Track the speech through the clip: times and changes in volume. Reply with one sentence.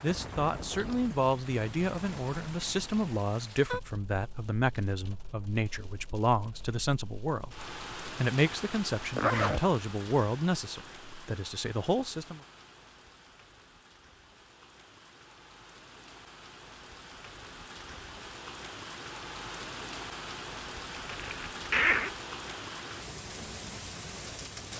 You can hear the speech from 0.0 to 12.4 s, at a steady volume.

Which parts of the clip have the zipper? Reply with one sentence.
The zipper can be heard from 9.2 to 9.7 s and from 21.1 to 22.1 s.